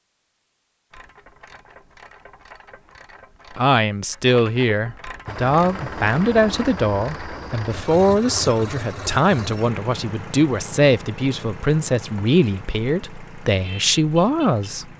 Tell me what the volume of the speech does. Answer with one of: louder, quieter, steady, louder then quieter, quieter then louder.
steady.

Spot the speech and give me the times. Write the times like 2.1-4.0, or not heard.
3.5-14.9.